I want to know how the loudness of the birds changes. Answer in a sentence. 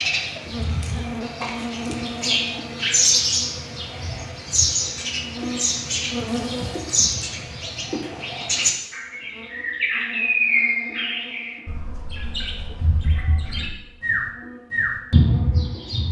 The volume of the birds stays about the same.